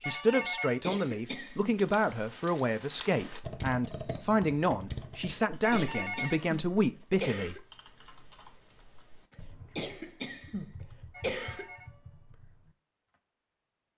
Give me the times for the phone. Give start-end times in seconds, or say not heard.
0.0-0.8, 5.6-7.0, 11.1-12.3.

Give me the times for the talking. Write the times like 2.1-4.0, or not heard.
0.1-7.6.